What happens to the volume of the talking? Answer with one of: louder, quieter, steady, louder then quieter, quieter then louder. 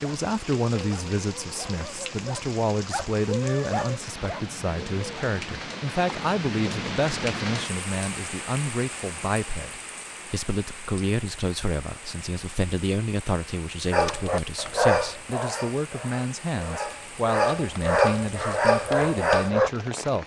steady.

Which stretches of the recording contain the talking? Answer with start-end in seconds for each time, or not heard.
0.0-20.2.